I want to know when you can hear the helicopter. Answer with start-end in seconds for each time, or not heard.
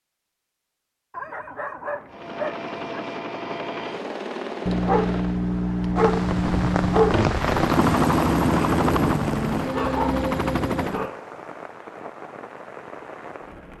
2.1-5.4, 7.3-11.1.